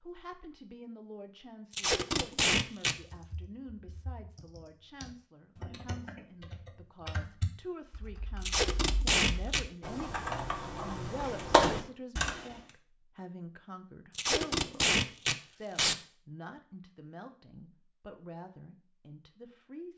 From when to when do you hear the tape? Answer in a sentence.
You can hear the tape from 1.7 to 3.0 s, from 8.4 to 9.6 s and from 14.1 to 15.9 s.